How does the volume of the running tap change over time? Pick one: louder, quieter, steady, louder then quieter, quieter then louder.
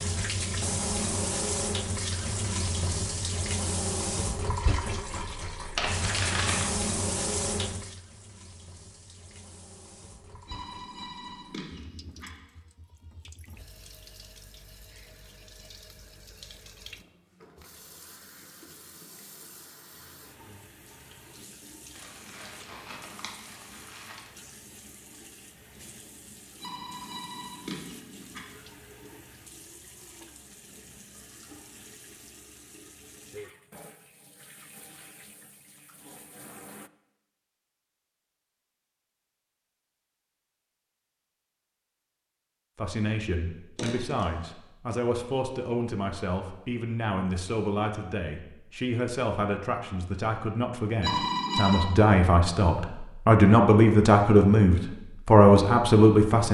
quieter.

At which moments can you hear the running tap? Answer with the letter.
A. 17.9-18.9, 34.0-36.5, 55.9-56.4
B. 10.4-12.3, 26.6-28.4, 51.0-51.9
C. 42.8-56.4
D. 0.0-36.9
D.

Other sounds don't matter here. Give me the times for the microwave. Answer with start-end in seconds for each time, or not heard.
not heard.